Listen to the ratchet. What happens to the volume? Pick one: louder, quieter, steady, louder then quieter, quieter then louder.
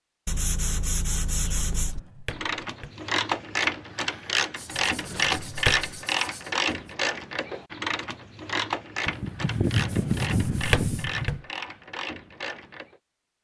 quieter.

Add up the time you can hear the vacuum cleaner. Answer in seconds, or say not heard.
not heard.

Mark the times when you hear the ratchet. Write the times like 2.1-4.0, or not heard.
1.5-13.0.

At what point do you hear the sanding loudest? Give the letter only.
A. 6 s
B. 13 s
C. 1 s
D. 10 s
D.